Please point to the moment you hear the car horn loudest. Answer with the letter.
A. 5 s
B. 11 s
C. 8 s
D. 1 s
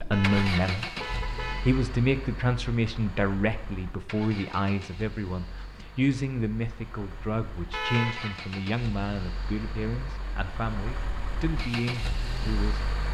C.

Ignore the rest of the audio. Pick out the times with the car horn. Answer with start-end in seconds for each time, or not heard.
0.1-1.9, 7.7-8.4.